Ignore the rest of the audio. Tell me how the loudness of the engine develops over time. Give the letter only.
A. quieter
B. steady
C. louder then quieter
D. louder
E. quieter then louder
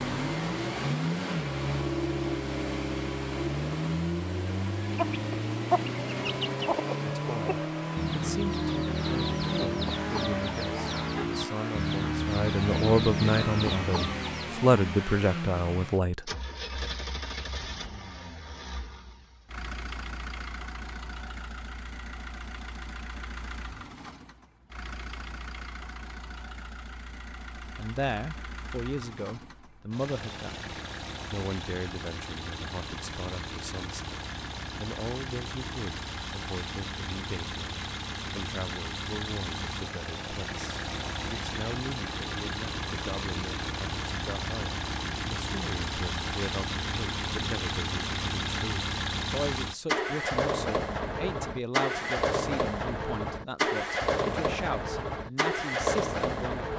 E.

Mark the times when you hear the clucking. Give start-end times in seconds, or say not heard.
4.8-14.8.